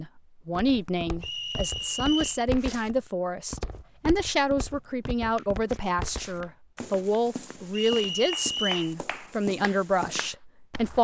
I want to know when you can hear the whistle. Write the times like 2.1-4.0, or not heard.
1.2-2.4, 7.7-8.9.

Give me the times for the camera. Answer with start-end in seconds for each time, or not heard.
not heard.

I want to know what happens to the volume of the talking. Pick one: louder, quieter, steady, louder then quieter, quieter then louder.
steady.